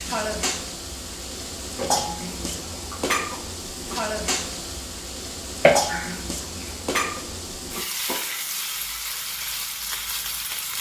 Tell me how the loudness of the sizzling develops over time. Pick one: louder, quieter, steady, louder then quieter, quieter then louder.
steady.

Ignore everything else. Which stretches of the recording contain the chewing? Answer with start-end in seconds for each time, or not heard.
1.8-3.4, 5.6-6.8.